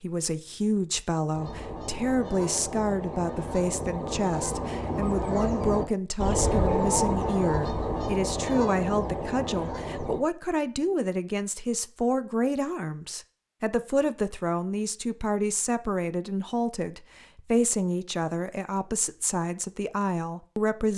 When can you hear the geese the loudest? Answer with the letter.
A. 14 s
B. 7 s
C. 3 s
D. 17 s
B.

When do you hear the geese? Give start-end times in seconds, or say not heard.
1.3-10.2.